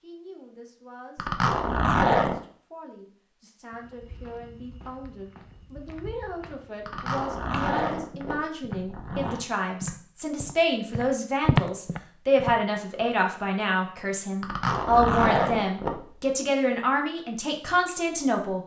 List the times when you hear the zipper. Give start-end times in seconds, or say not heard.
1.1-2.4, 6.8-9.4, 14.4-16.2.